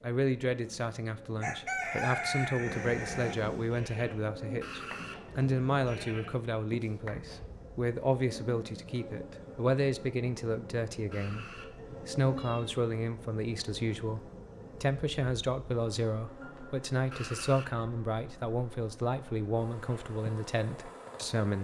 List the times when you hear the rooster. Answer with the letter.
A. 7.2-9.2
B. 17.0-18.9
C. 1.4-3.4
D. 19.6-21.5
C.